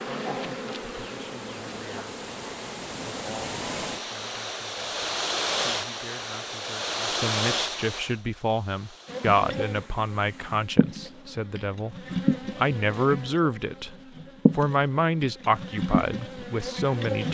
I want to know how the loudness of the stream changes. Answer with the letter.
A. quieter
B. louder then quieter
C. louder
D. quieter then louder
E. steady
B.